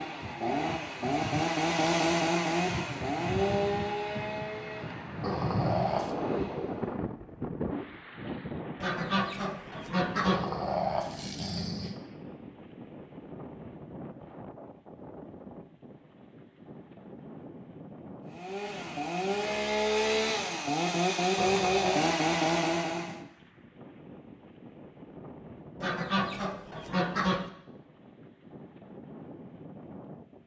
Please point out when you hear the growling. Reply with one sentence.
The growling can be heard from 5.2 to 6.1 s, from 10.2 to 11.9 s and from 21.4 to 22.1 s.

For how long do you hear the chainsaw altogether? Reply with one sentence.
The chainsaw can be heard for 12 seconds in total.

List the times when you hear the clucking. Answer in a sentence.
You can hear the clucking from 8.8 to 10.5 s and from 25.8 to 27.5 s.